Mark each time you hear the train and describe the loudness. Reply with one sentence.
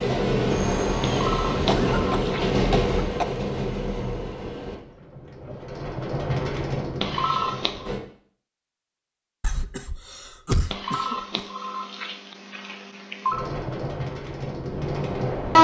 The train can be heard from 0.0 to 8.0 s, getting quieter then louder; and briefly from 13.3 to 15.5 s.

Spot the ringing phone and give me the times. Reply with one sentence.
The ringing phone can be heard from 1.1 to 2.5 s, from 7.0 to 7.9 s and from 10.7 to 13.4 s.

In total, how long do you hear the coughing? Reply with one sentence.
You can hear the coughing for 4 seconds altogether.